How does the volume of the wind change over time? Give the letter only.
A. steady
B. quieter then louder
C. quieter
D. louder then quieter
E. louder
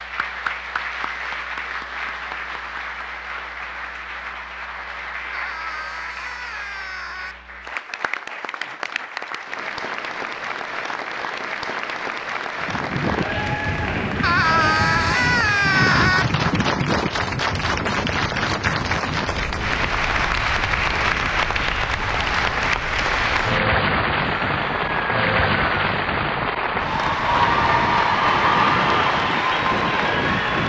B.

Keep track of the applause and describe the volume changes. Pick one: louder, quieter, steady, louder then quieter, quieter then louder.
louder.